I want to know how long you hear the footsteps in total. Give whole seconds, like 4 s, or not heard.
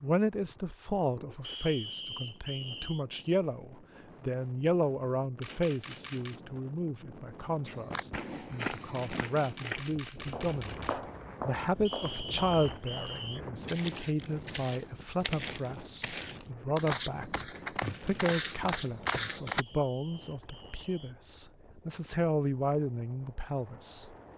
12 s.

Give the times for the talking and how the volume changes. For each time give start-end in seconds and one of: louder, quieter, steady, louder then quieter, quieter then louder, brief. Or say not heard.
0.0-24.1 steady.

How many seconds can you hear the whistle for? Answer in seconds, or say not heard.
5 s.